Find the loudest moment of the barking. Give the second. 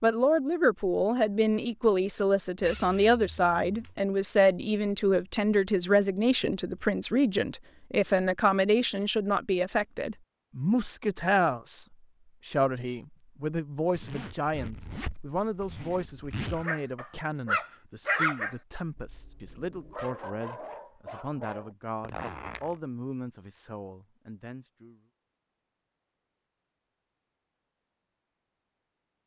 18 s.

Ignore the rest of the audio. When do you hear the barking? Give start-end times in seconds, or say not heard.
16.6-21.8.